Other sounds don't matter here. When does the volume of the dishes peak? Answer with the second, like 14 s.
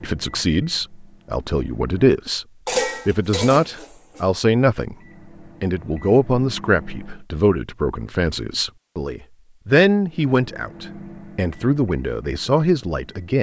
3 s.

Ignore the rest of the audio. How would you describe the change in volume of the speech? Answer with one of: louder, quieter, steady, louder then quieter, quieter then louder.
steady.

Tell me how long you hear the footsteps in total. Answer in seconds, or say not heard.
not heard.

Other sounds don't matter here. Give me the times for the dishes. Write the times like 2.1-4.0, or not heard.
2.6-4.2.